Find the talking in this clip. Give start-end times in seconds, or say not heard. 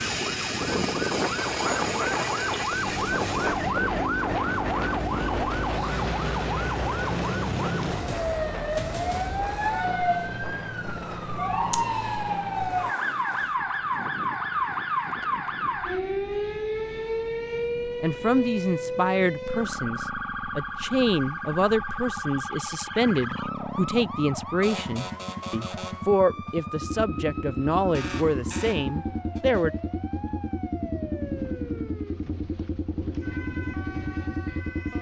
18.0-29.7.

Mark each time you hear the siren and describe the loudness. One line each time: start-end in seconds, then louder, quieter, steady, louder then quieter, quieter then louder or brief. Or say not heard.
0.0-34.9 quieter.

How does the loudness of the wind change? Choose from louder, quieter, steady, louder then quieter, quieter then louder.
quieter.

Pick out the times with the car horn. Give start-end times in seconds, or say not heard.
not heard.